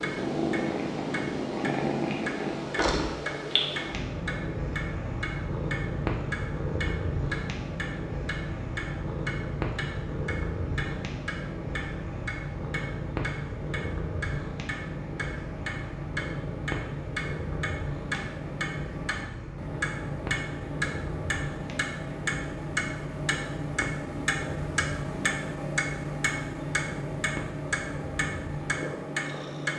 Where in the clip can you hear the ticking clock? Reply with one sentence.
The ticking clock can be heard from 0.0 to 29.7 s.